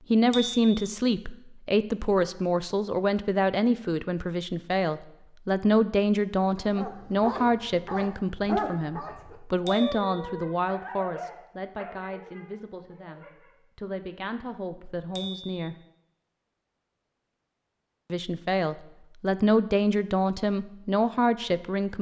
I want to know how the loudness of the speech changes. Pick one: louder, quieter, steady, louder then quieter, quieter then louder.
quieter then louder.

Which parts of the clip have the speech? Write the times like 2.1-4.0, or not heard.
0.1-15.8, 18.1-21.9.